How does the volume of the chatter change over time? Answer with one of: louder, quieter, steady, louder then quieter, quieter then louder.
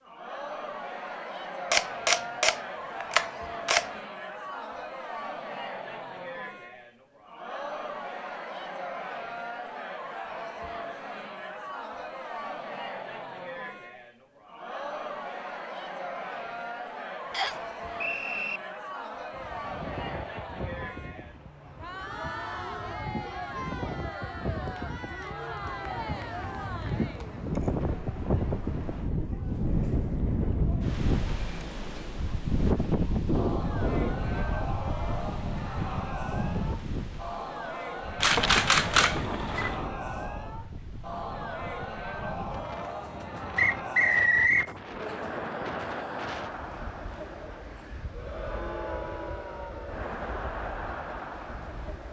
steady.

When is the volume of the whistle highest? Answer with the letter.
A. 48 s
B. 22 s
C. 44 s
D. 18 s
C.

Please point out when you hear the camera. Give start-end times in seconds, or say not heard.
1.7-3.9, 38.2-39.9.